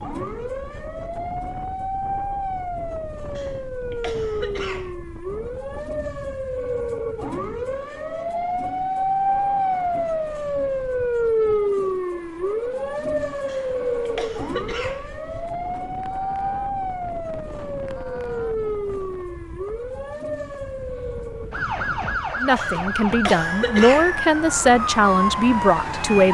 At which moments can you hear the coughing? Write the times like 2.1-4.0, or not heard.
3.4-5.0, 13.4-15.1, 22.6-24.1.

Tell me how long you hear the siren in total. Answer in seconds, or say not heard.
26 s.